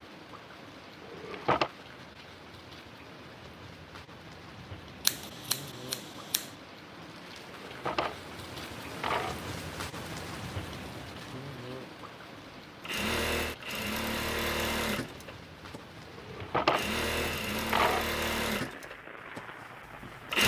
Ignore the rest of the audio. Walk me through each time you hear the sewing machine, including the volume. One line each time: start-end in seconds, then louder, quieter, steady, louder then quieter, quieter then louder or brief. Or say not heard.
12.6-20.4 quieter.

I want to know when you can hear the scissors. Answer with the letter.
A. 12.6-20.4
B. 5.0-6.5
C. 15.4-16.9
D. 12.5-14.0
B.